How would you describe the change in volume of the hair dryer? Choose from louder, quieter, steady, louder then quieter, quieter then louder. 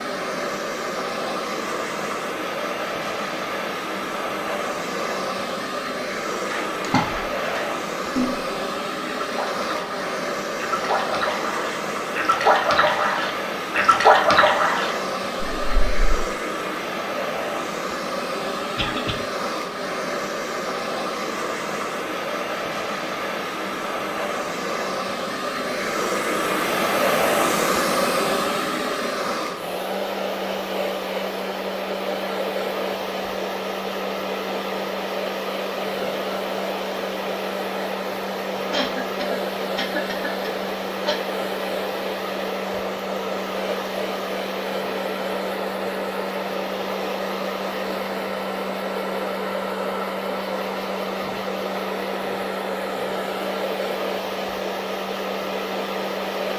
steady.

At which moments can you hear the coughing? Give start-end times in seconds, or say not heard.
18.8-19.2, 38.7-41.2.